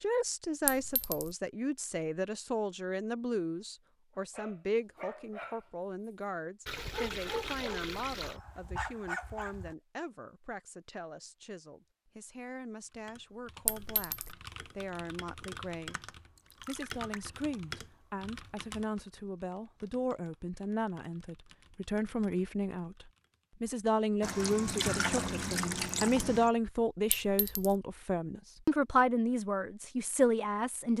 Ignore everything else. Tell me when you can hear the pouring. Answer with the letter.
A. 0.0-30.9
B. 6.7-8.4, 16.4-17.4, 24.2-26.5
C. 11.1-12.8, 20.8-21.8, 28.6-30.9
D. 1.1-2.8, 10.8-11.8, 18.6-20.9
B.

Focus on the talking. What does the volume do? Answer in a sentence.
The loudness of the talking goes down, then up.